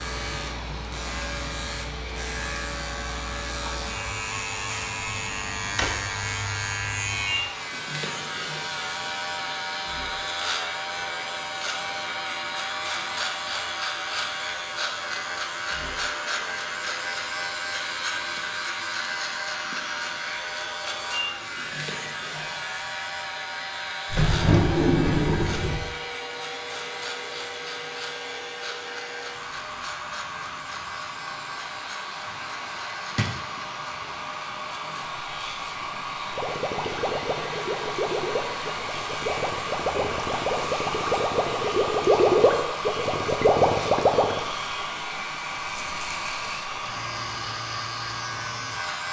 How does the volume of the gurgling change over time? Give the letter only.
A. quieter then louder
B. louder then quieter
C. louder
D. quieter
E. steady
C.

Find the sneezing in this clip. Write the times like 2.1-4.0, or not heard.
not heard.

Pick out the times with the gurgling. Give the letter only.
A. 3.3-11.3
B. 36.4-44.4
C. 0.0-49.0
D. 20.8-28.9
B.